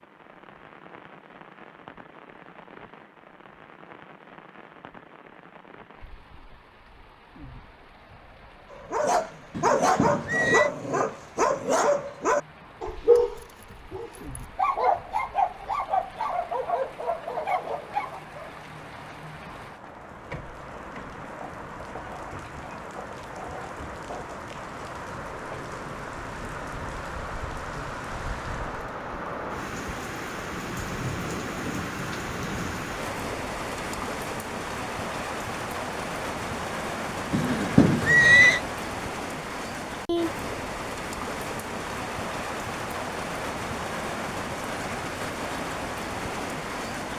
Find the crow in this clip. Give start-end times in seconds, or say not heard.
not heard.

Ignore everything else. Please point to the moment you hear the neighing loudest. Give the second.
38 s.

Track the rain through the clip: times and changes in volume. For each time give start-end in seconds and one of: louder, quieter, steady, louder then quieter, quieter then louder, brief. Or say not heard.
0.0-47.1 louder.